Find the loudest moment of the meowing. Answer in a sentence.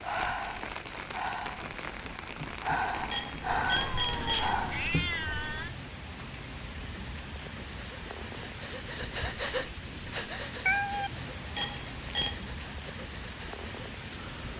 The loudest moment of the meowing is at 11 seconds.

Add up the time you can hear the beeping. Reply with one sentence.
You can hear the beeping for 2 seconds altogether.